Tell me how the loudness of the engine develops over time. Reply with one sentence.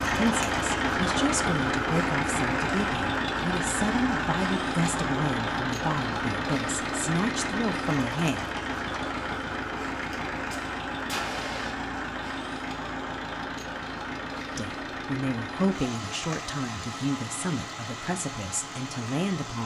The volume of the engine goes down.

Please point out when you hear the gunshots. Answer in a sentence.
The gunshots can be heard from 10.1 to 11.8 s.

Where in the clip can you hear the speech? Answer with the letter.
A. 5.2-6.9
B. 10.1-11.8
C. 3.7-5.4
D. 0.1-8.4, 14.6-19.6
D.